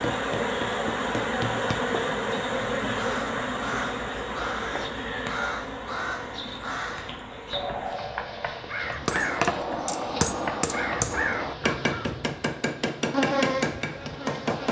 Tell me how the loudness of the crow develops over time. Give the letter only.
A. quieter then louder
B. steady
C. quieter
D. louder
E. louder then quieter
B.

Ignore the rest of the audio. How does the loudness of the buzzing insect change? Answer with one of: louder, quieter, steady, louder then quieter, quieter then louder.
quieter then louder.